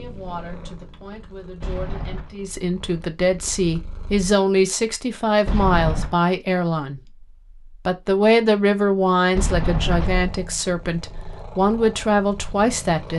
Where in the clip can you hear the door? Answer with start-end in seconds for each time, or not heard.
1.6-2.4, 5.5-6.2, 9.3-10.3.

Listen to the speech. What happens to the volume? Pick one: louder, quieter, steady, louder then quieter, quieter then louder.
louder.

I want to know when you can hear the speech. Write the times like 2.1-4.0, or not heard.
0.0-7.0, 7.8-13.1.